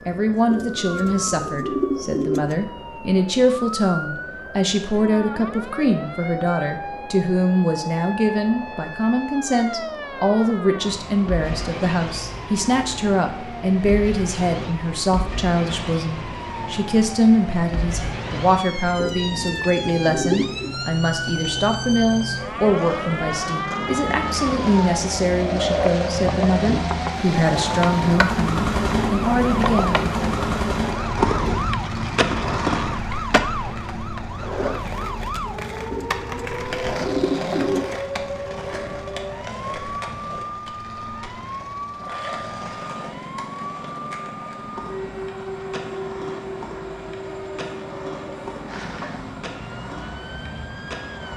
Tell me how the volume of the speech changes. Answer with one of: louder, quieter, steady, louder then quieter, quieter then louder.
steady.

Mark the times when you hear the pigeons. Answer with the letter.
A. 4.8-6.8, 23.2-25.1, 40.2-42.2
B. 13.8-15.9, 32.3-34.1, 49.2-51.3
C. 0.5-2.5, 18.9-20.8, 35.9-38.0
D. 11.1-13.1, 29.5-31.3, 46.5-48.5
C.